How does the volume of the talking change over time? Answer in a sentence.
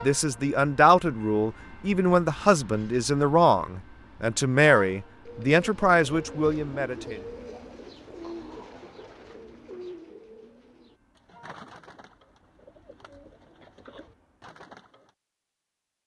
The volume of the talking stays about the same.